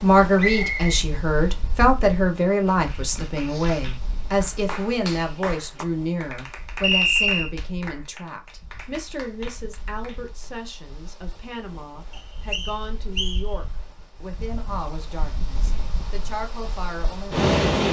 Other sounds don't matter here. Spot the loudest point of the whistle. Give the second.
7 s.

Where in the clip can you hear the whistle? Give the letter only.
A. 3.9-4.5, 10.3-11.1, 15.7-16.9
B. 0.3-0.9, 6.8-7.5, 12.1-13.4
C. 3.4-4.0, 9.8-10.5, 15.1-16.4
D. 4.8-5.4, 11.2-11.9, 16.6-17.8
B.